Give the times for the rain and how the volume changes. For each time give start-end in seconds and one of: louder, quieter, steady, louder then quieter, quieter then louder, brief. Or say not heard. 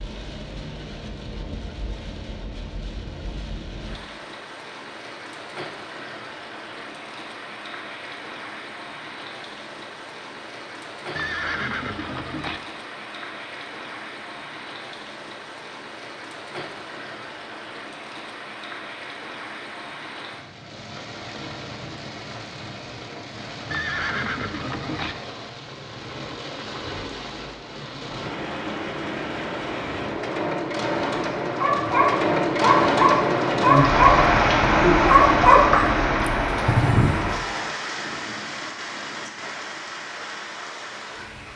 0.0-41.5 louder.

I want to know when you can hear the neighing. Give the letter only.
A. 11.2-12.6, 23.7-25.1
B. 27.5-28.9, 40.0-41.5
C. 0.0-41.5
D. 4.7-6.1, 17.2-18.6
A.